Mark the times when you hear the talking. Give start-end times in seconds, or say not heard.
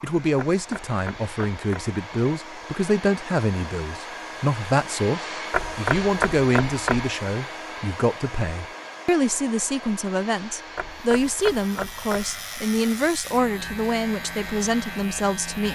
0.0-15.6.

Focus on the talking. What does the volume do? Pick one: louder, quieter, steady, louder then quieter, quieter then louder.
steady.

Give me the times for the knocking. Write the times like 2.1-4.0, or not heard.
0.3-1.9, 5.5-7.2, 10.8-12.3.